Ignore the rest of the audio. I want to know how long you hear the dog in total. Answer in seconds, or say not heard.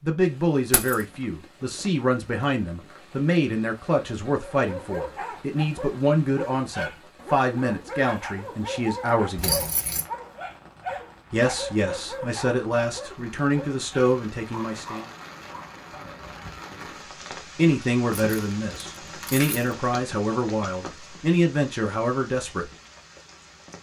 12 s.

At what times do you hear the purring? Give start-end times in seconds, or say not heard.
not heard.